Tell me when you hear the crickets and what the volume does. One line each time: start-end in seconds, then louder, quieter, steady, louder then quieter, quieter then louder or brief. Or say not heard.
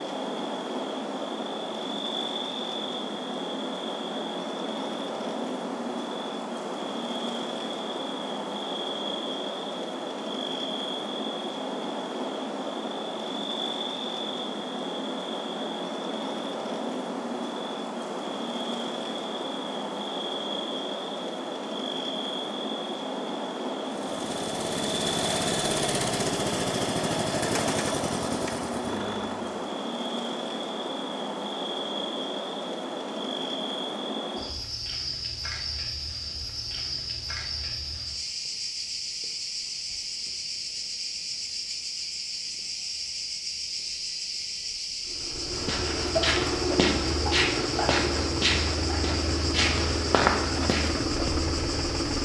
0.0-52.1 steady.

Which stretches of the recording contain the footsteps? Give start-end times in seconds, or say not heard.
45.5-51.3.